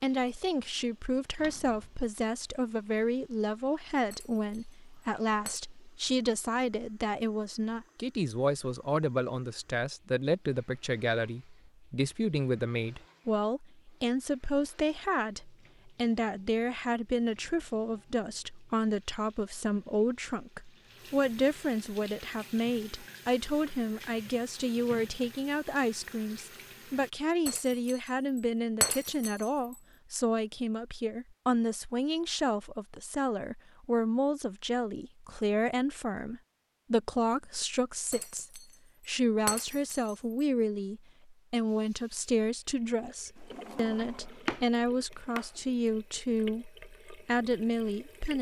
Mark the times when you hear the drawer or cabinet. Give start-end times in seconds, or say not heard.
1.4-2.1, 43.4-45.5.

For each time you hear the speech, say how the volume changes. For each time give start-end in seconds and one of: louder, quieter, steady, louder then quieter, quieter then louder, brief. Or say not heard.
0.0-48.3 steady.